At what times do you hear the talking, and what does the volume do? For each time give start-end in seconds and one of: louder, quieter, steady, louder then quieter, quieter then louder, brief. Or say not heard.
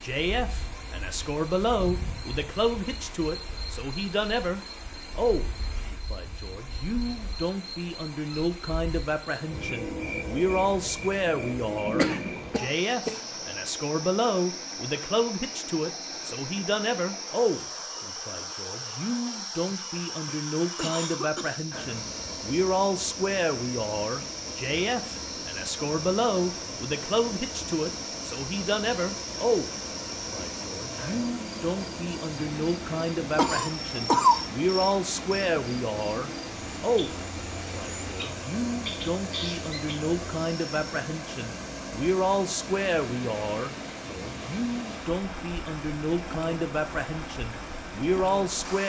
0.0-48.8 steady.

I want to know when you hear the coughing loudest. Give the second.
34 s.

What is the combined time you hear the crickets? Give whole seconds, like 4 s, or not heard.
41 s.